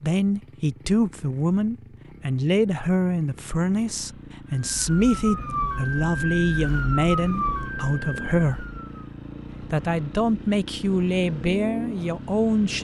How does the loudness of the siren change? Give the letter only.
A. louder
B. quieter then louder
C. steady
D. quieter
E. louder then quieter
D.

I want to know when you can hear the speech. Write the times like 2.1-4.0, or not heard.
0.0-8.7, 9.6-12.7.